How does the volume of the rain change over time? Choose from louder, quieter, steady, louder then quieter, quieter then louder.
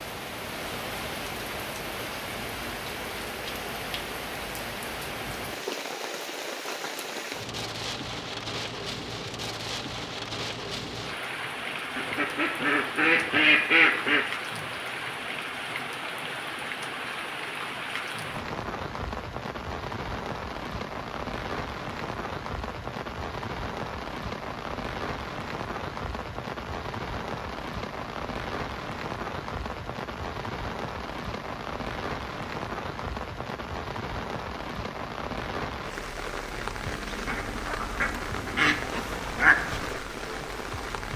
steady.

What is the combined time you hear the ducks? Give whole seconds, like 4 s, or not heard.
5 s.